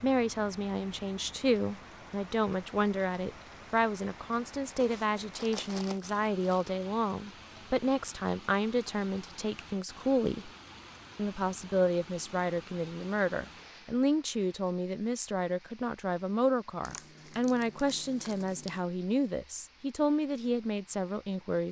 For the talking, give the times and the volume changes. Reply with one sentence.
The talking can be heard from 0.0 to 10.5 s, at a steady volume; and from 11.2 to 21.6 s, at a steady volume.